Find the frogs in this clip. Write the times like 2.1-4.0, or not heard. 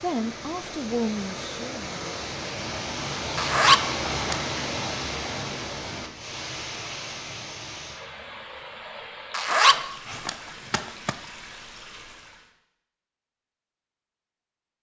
not heard.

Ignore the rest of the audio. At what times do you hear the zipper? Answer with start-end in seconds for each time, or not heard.
3.4-4.8, 9.3-11.2.